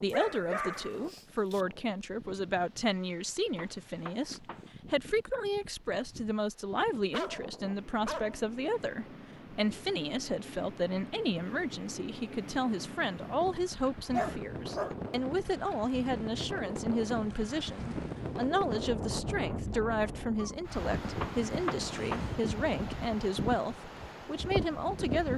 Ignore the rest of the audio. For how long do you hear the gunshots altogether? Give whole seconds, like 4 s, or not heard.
2 s.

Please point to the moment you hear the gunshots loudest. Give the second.
22 s.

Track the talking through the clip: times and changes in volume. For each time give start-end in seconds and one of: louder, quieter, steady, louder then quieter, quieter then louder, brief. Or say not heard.
0.0-25.3 steady.